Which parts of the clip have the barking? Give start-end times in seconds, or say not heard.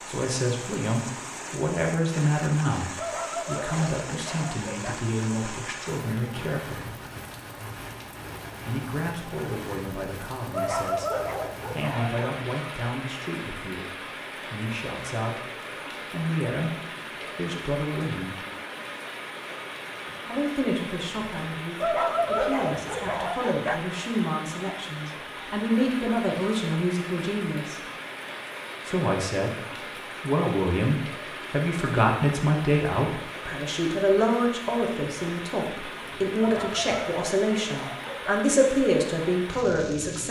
3.0-5.0, 10.5-12.3, 21.8-23.8, 36.4-38.4.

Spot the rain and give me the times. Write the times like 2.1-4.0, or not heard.
0.0-40.2.